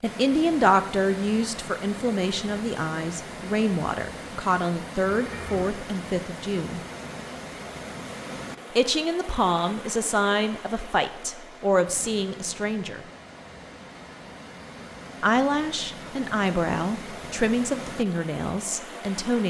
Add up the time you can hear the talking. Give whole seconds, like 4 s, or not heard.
15 s.